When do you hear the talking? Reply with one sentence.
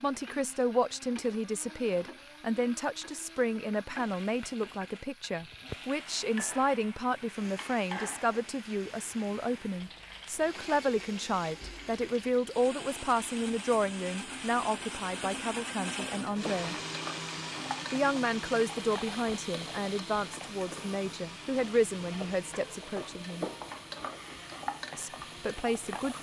You can hear the talking from 0.0 to 16.8 s, from 17.9 to 23.4 s and from 24.9 to 26.1 s.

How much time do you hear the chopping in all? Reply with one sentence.
The chopping can't be heard in this clip.